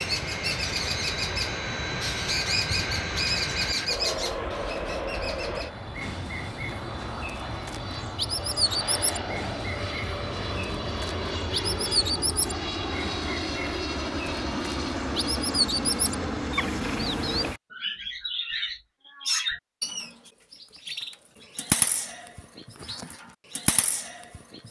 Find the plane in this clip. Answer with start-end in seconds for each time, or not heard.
0.0-17.6.